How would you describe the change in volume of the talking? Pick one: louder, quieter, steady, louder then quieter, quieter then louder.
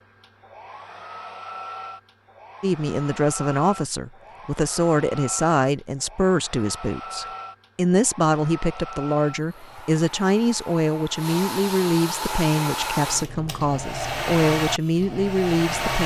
steady.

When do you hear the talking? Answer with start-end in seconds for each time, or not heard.
2.6-16.0.